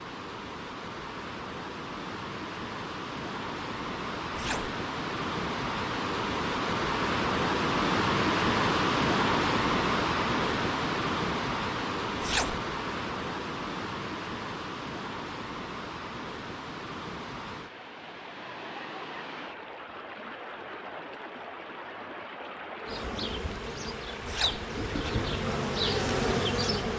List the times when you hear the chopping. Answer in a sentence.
You can't hear the chopping here.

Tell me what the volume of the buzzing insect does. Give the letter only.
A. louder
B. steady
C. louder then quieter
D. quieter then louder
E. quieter
A.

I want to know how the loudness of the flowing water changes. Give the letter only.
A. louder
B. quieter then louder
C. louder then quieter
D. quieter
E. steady
C.